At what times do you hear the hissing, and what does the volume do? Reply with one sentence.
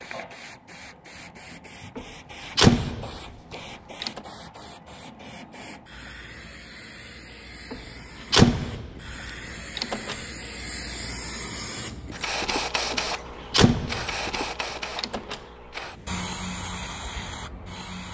You can hear the hissing from 0.0 to 18.0 s, getting louder.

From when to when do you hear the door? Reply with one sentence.
You can hear the door from 1.9 to 4.2 s, from 7.7 to 10.2 s, from 12.9 to 14.3 s and from 14.9 to 15.4 s.